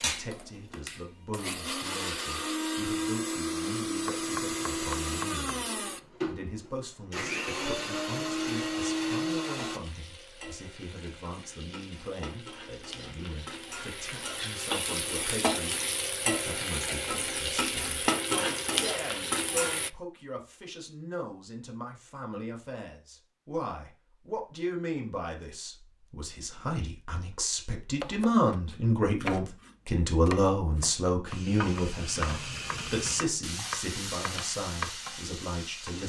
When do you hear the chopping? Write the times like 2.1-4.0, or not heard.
4.0-5.5, 28.0-35.0.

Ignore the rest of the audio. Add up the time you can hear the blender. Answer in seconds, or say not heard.
10 s.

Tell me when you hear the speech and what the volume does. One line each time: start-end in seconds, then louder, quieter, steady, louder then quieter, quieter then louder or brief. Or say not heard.
0.0-36.0 louder.